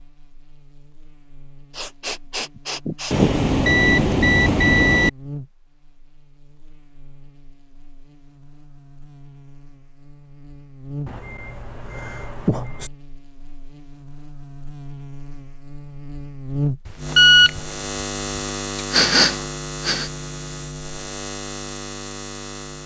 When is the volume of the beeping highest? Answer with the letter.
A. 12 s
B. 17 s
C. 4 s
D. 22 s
B.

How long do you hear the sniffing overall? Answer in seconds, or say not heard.
3 s.